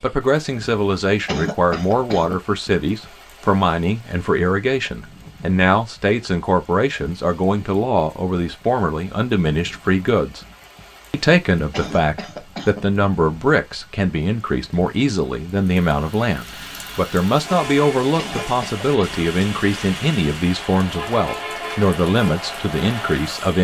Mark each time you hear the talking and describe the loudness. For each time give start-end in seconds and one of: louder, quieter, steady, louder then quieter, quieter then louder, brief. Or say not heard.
0.0-10.4 steady
11.1-23.6 steady.